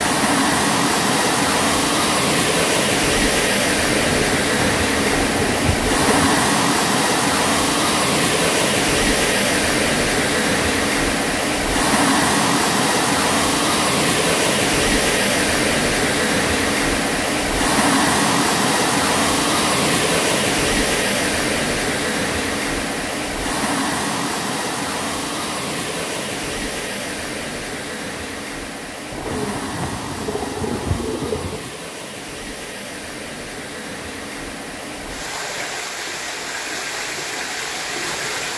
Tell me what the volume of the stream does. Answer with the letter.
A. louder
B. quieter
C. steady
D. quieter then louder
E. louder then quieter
B.